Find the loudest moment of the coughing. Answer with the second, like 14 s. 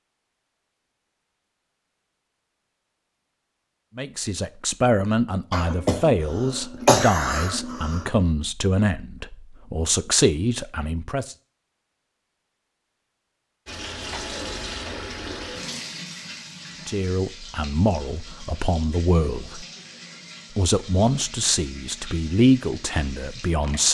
7 s.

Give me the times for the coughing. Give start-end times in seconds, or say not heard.
5.5-8.1.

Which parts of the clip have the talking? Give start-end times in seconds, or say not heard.
4.0-11.3, 16.9-19.6, 20.6-23.8.